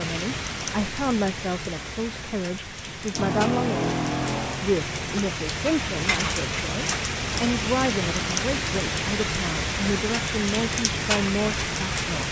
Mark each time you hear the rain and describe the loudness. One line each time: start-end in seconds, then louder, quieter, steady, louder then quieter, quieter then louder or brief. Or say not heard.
0.0-12.2 louder.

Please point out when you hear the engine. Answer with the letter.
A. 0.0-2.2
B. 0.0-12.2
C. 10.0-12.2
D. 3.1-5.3
D.